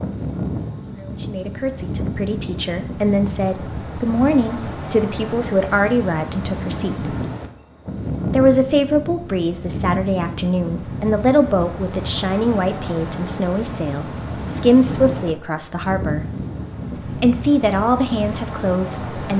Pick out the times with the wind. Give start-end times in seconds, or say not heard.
0.0-19.3.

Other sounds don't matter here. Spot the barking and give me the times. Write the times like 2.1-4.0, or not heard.
not heard.